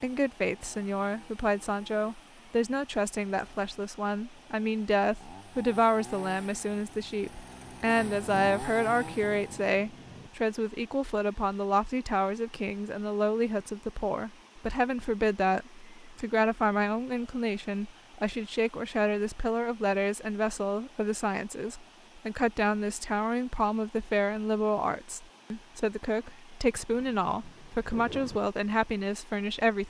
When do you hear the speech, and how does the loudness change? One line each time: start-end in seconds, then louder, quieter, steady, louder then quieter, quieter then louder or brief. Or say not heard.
0.0-29.8 steady.